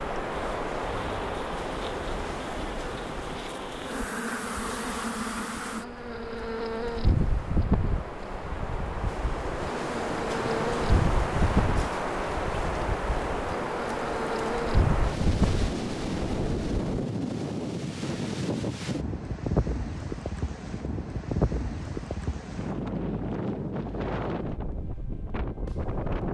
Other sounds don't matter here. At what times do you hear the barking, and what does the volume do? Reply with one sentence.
The barking can't be heard in this clip.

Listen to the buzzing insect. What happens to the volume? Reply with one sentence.
The loudness of the buzzing insect goes up.